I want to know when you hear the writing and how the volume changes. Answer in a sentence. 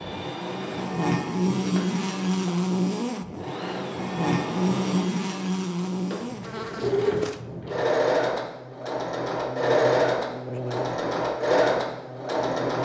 You can't hear the writing here.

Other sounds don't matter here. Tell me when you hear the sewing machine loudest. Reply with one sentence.
The volume of the sewing machine peaks at 10 seconds.